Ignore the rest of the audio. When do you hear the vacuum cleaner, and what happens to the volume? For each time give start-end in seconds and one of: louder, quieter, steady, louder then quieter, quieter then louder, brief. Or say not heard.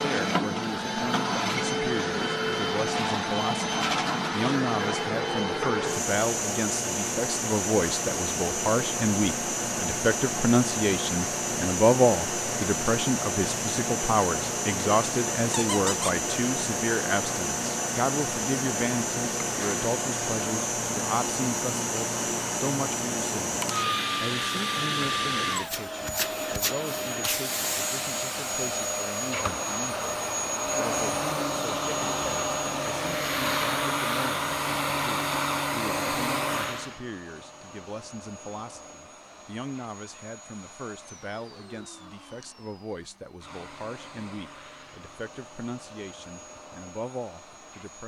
0.0-48.0 quieter.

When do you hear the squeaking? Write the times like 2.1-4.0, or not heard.
15.5-16.2.